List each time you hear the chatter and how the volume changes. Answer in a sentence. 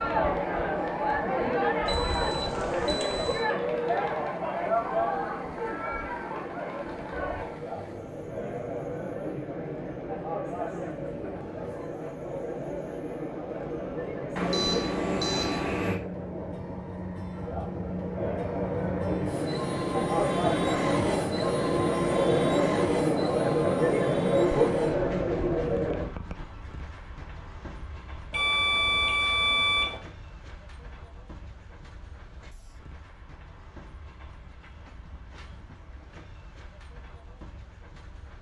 You can hear the chatter from 0.0 to 26.1 s, getting quieter then louder.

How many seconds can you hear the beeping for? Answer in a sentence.
The beeping can be heard for 5 seconds in total.